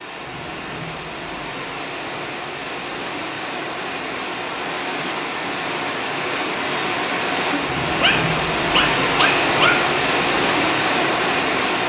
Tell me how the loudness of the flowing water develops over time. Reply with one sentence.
The volume of the flowing water goes up.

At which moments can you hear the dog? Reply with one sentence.
The dog can be heard from 8.0 to 9.9 s.